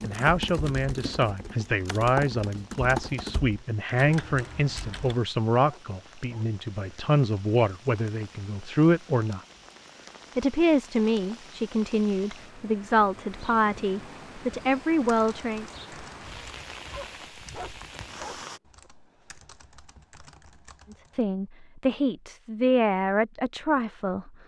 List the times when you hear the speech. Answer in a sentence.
The speech can be heard from 0.0 to 9.4 s, from 10.3 to 15.7 s and from 20.9 to 24.3 s.